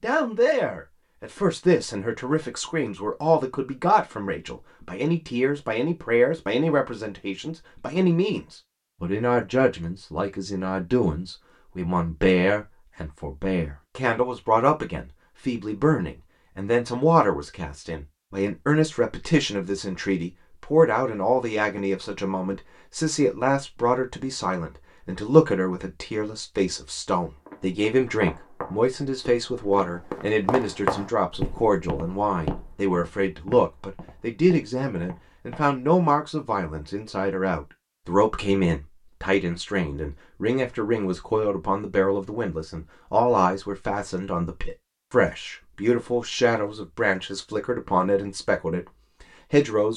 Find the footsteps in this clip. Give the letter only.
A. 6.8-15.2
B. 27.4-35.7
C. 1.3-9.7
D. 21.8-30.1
B.